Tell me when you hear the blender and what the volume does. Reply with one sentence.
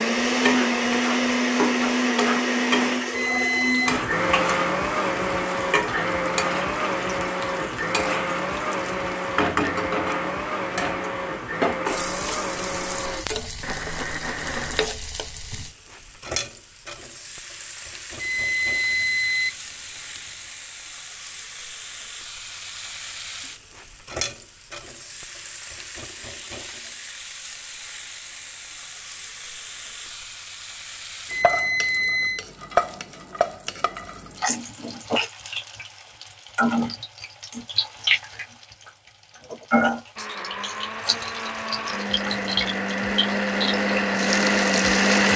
The blender can be heard from 0.0 to 14.9 s, getting quieter; and from 40.1 to 45.3 s, getting louder.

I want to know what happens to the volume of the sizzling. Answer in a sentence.
The volume of the sizzling goes down, then up.